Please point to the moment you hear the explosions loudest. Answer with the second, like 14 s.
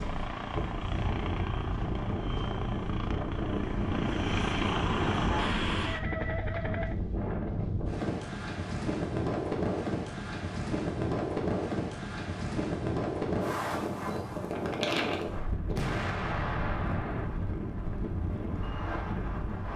16 s.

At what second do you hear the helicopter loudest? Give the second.
5 s.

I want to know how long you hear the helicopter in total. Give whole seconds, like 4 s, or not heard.
7 s.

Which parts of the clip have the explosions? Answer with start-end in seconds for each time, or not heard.
15.8-17.3.